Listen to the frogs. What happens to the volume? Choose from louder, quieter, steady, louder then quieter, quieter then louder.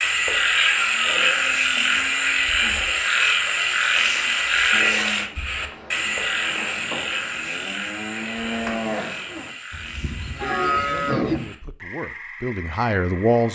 quieter.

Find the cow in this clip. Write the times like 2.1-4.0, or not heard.
0.7-11.3.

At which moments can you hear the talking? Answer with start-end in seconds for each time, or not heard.
10.8-13.5.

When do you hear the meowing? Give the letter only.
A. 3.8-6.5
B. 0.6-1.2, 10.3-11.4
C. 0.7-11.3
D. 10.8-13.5
B.